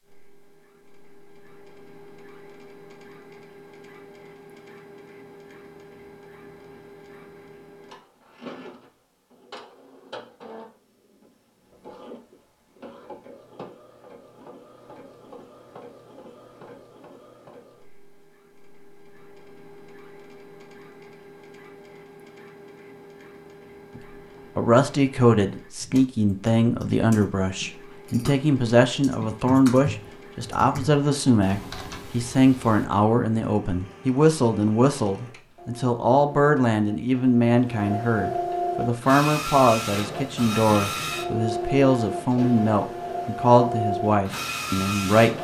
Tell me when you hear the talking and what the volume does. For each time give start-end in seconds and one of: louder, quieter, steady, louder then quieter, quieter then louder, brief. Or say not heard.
23.9-45.3 steady.